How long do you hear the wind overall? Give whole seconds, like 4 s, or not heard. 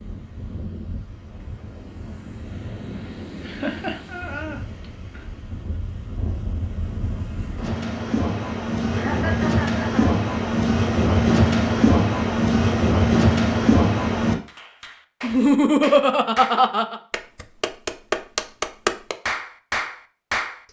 14 s.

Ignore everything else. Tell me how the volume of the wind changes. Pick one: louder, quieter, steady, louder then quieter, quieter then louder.
louder.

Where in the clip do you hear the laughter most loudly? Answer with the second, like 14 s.
16 s.